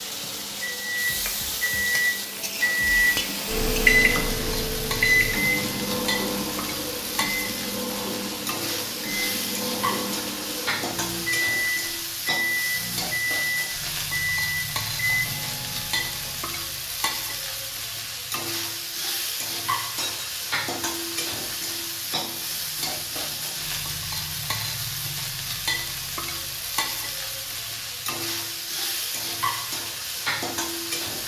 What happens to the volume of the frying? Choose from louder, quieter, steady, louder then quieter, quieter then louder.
steady.